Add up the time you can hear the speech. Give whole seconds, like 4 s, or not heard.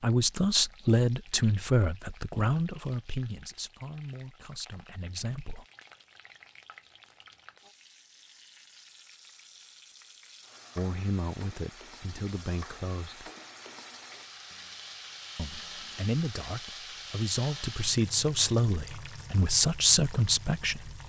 14 s.